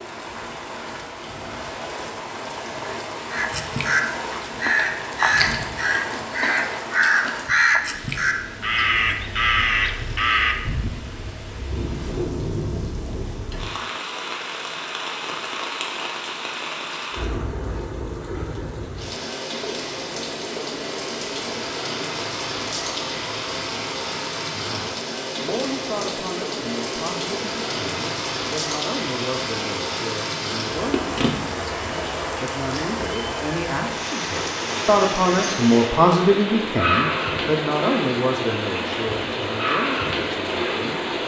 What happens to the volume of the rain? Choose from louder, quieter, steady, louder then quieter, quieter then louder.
louder.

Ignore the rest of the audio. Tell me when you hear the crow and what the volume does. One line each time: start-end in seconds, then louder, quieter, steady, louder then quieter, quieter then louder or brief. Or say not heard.
3.3-11.0 steady.